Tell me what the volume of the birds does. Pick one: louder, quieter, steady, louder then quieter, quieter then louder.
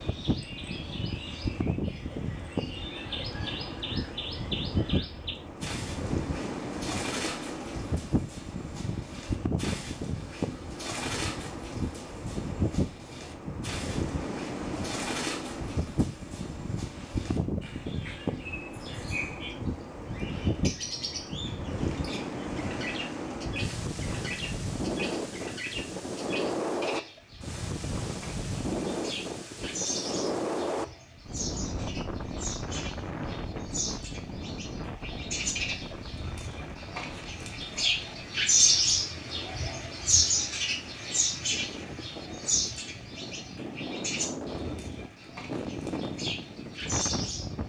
louder.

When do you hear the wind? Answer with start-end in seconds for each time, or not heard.
0.0-47.6.